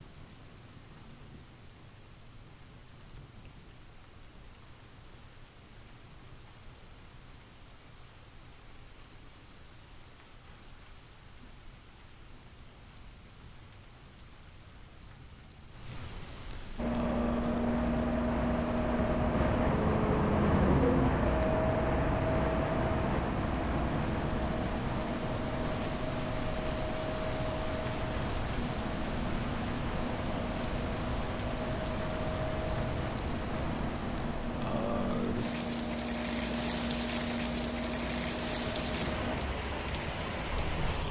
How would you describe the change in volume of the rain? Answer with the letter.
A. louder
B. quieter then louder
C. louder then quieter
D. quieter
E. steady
A.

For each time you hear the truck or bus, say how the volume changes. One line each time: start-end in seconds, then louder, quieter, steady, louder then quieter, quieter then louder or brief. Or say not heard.
16.8-41.0 quieter.